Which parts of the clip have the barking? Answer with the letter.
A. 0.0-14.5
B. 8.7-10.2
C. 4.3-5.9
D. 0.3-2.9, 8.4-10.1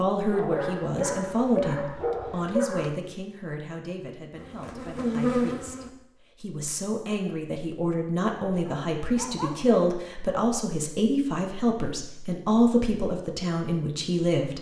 D.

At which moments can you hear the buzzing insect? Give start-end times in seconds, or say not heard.
4.3-5.9.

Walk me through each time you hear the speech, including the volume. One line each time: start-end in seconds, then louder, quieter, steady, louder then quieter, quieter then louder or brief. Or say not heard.
0.0-14.5 quieter then louder.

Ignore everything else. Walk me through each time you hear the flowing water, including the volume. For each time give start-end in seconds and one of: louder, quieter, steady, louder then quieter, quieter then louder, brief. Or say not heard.
not heard.